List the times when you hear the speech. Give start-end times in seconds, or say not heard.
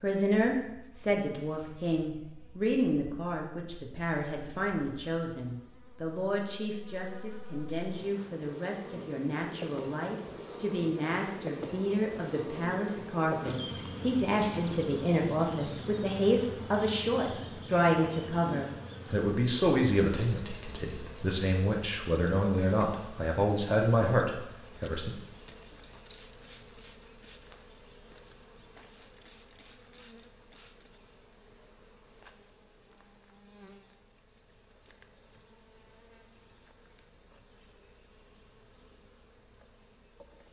0.0-25.1.